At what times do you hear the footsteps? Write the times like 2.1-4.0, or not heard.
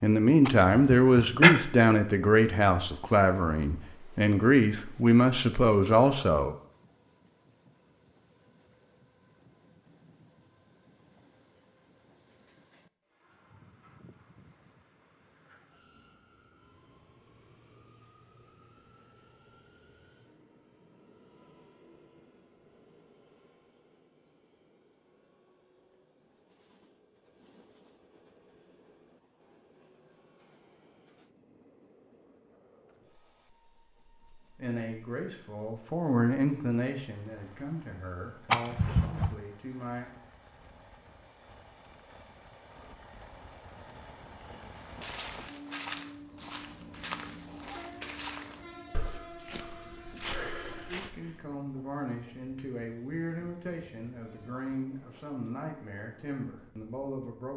44.8-51.4.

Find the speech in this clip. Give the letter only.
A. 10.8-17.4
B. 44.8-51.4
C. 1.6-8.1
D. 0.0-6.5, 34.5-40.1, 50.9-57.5
D.